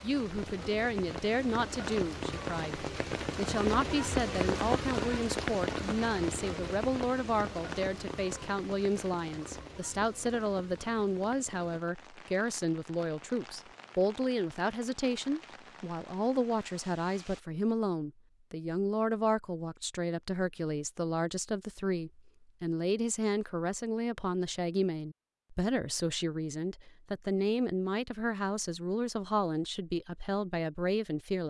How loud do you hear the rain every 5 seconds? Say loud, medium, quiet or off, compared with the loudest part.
loud, loud, quiet, quiet, off, off, off.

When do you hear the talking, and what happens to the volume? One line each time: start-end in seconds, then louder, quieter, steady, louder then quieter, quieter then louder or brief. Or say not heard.
0.0-31.4 steady.